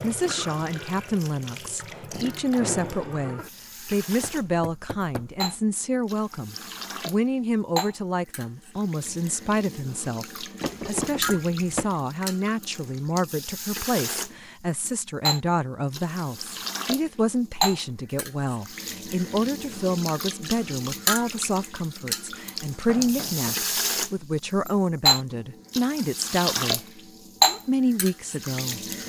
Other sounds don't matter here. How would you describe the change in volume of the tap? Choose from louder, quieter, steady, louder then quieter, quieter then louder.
louder.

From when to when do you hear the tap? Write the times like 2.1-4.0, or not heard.
0.0-29.0.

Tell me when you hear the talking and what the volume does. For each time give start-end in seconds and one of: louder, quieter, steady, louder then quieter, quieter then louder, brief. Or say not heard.
0.0-28.8 steady.